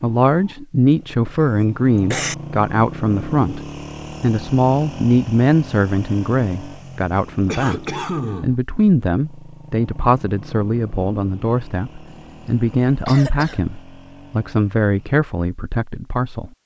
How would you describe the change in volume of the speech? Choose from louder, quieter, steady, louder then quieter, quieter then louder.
steady.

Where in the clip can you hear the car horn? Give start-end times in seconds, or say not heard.
not heard.